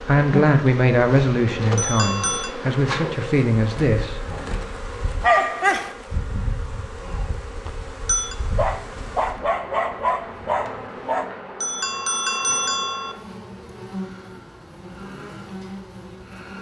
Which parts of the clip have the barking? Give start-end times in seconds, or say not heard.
5.2-6.0, 8.5-11.3.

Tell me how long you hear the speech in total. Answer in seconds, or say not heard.
4 s.